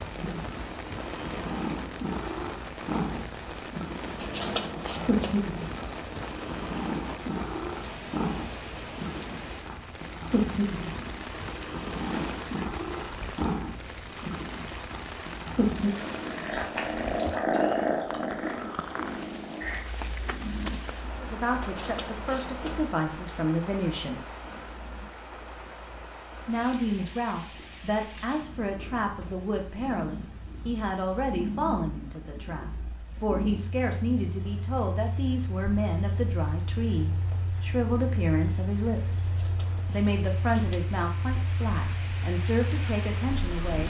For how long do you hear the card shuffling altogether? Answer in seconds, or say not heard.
4 s.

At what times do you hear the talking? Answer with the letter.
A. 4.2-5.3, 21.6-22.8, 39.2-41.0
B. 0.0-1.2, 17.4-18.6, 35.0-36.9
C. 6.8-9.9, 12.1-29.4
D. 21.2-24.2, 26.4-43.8
D.